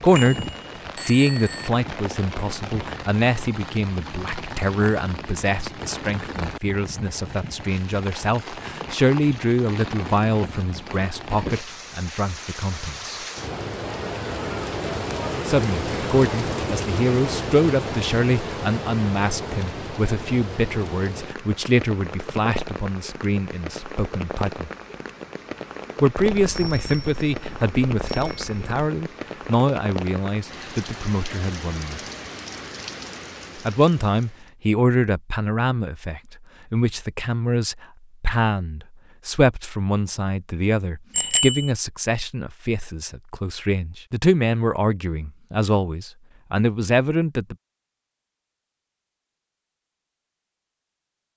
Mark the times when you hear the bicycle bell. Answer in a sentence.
You can hear the bicycle bell from 0.1 to 1.7 s, from 26.4 to 28.6 s and from 41.1 to 41.7 s.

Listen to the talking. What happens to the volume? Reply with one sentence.
The volume of the talking stays about the same.